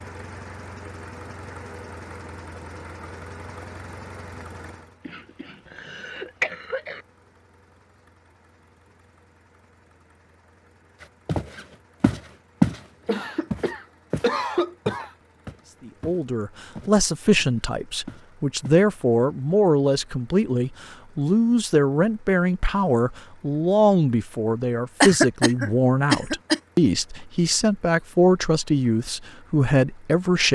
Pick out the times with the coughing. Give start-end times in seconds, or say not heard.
5.0-7.0, 13.1-15.1, 25.0-26.6.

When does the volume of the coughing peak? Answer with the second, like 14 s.
25 s.